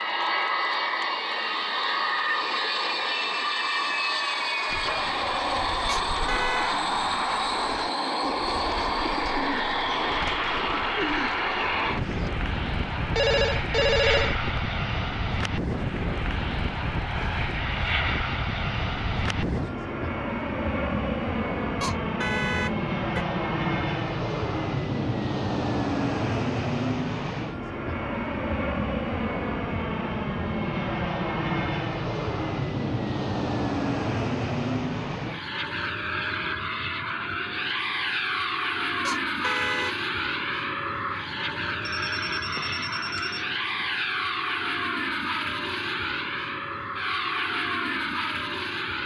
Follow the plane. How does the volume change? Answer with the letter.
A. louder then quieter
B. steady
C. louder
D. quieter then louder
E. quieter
B.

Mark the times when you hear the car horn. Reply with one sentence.
You can hear the car horn from 5.8 to 6.8 s, from 21.8 to 23.2 s and from 39.0 to 40.0 s.